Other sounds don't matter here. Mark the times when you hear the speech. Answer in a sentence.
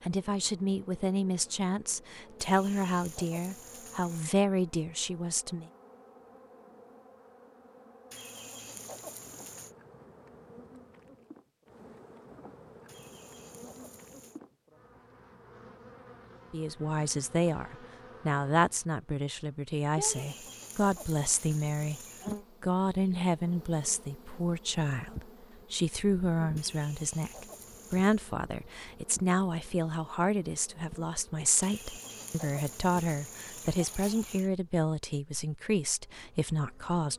The speech can be heard from 0.0 to 5.7 s, from 16.5 to 22.0 s and from 22.6 to 37.1 s.